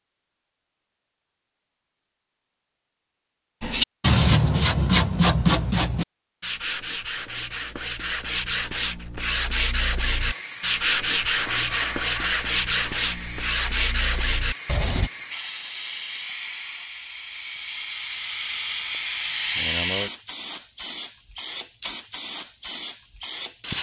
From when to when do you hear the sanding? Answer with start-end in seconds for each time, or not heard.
3.6-15.1.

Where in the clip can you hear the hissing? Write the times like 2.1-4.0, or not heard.
10.1-23.7.